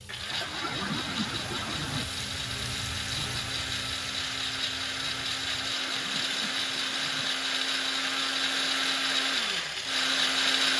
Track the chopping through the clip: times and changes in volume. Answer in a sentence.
The chopping can't be heard in this clip.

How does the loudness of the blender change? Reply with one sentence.
The volume of the blender goes up.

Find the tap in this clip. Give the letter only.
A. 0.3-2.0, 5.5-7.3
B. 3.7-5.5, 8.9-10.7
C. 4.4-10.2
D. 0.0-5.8
D.